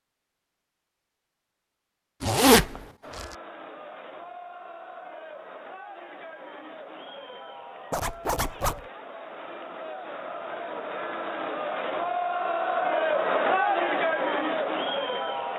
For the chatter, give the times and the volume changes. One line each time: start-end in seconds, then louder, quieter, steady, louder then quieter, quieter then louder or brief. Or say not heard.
3.0-15.5 louder.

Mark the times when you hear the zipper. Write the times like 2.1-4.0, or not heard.
2.2-3.2, 7.9-8.8.